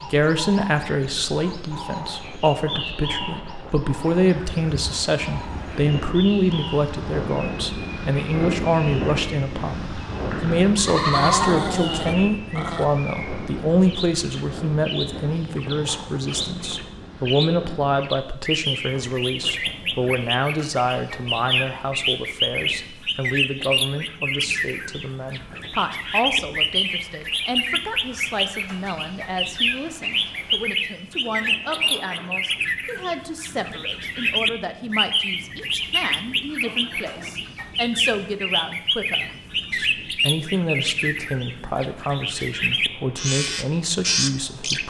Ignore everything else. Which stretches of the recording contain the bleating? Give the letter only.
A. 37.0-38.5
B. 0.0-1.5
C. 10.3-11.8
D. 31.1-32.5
C.